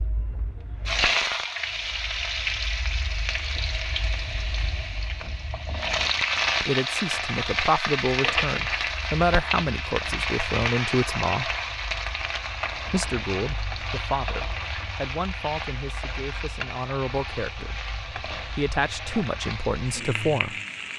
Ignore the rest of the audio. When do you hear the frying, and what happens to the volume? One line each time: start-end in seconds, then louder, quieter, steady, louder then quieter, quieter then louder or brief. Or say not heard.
0.0-20.9 quieter.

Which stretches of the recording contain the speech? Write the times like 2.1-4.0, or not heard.
6.7-11.5, 12.8-20.6.